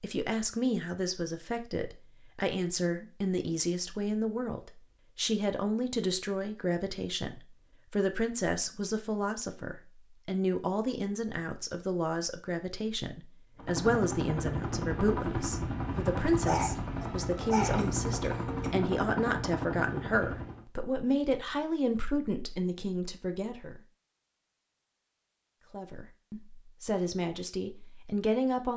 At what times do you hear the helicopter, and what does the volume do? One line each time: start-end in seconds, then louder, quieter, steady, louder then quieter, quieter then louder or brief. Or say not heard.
13.6-20.6 steady.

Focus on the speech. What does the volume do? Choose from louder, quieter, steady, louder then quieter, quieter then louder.
steady.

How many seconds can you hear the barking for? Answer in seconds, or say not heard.
2 s.